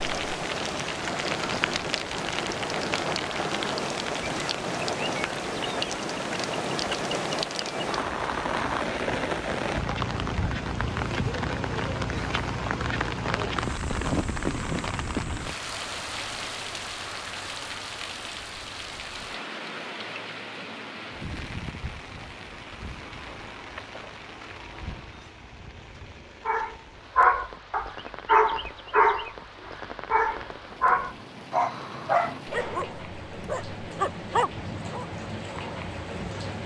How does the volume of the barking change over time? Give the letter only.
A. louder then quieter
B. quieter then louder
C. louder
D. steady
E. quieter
E.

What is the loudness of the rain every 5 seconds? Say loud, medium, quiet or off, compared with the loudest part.
loud, loud, loud, medium, medium, quiet, medium, medium.